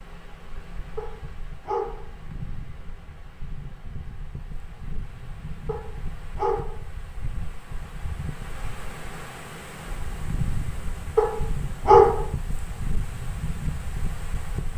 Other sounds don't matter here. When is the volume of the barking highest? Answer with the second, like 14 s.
12 s.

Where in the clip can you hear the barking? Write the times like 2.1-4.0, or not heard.
0.9-2.0, 5.7-6.8, 11.2-12.2.